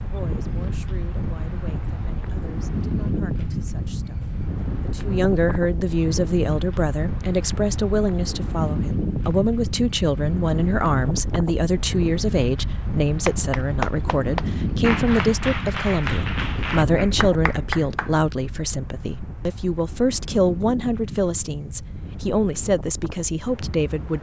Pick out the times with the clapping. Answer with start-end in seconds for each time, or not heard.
13.2-18.1.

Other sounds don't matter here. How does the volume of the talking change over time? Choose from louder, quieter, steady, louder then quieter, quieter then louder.
louder.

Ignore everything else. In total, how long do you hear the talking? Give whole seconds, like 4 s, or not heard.
24 s.